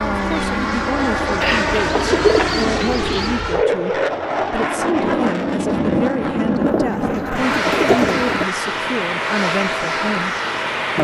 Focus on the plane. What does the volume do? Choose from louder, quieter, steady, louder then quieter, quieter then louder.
steady.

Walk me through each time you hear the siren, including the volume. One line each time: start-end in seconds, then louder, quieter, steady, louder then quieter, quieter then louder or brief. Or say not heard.
not heard.